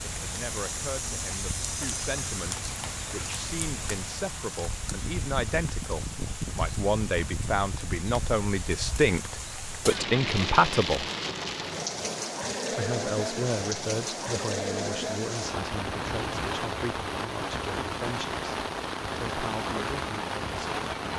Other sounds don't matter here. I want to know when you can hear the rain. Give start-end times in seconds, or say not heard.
0.0-21.1.